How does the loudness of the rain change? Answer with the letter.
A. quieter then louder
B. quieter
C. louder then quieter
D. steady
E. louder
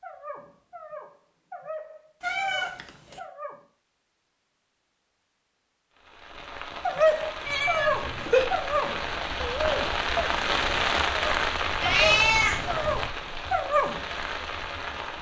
C.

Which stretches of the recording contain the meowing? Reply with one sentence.
You can hear the meowing from 2.2 to 3.2 s, from 7.5 to 8.4 s and from 11.8 to 13.1 s.